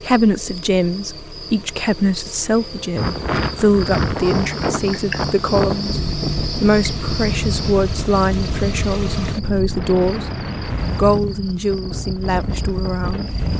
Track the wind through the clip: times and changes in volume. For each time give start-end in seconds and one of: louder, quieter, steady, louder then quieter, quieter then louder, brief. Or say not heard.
3.0-13.5 quieter.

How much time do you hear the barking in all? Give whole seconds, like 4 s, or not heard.
not heard.